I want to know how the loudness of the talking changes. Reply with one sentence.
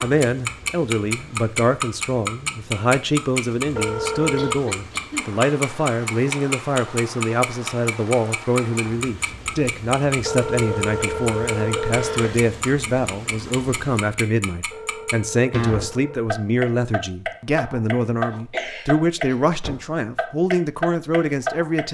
The volume of the talking stays about the same.